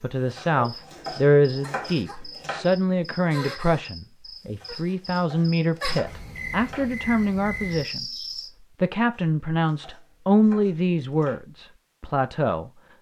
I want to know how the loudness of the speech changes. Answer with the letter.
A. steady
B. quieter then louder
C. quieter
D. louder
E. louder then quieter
A.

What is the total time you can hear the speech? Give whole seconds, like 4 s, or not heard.
12 s.